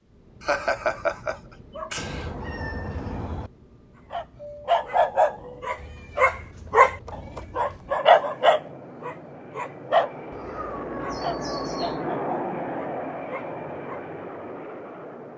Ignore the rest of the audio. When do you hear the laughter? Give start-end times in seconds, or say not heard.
0.4-2.3.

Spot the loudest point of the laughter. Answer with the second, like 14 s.
1 s.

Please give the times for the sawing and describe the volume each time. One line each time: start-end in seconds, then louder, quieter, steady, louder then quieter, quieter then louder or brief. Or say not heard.
not heard.